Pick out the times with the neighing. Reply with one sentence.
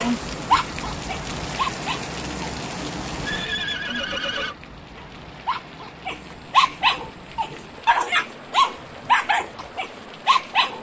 The neighing can be heard from 3.2 to 4.5 s.